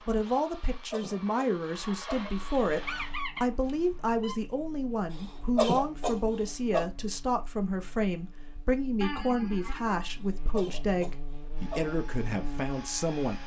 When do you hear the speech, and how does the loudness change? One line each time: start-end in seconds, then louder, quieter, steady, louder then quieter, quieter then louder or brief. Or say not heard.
0.1-13.4 steady.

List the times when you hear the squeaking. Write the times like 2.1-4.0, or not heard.
2.9-4.3, 9.0-10.1.